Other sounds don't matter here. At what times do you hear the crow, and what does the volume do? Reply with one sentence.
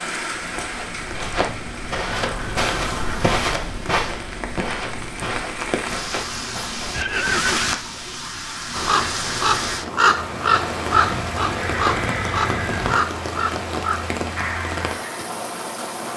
You can hear the crow from 8.8 to 15.3 s, getting quieter.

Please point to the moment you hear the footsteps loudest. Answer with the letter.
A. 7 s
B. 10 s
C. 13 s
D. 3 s
D.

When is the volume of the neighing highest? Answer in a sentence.
The volume of the neighing peaks at 7 seconds.